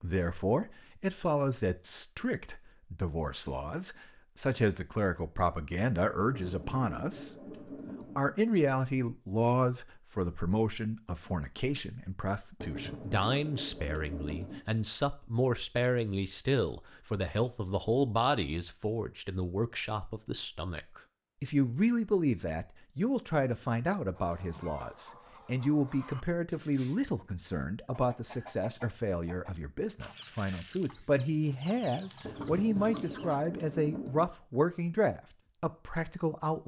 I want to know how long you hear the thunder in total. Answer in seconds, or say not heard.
6 s.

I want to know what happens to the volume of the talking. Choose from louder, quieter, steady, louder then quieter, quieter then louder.
steady.